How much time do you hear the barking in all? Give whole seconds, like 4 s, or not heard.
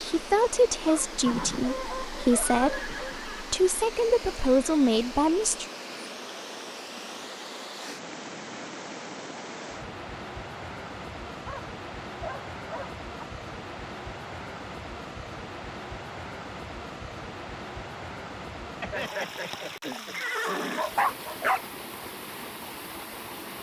6 s.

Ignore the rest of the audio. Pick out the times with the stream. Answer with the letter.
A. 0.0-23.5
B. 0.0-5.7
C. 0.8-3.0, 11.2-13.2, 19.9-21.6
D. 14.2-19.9
A.